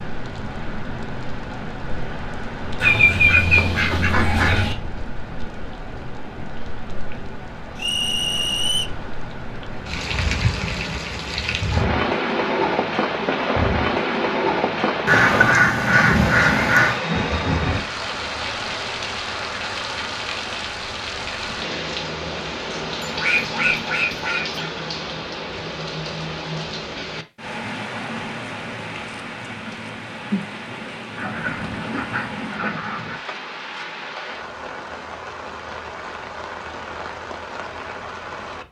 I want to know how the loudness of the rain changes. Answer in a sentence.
The loudness of the rain goes up, then down.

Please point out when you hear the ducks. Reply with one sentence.
You can hear the ducks from 2.8 to 4.8 s, from 15.1 to 17.0 s, from 23.0 to 24.7 s and from 31.1 to 33.2 s.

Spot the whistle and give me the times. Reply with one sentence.
The whistle can be heard from 7.8 to 8.9 s.